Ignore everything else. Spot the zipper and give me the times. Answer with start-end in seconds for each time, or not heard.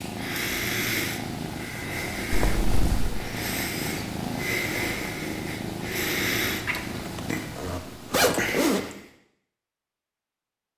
2.3-3.0, 6.7-8.9.